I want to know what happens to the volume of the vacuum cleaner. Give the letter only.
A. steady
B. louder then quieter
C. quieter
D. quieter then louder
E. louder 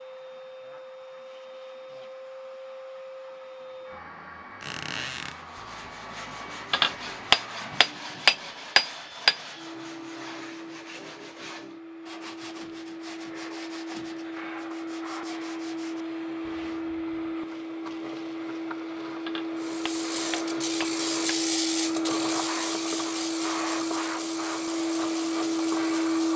E.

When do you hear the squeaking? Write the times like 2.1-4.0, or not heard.
4.6-5.3.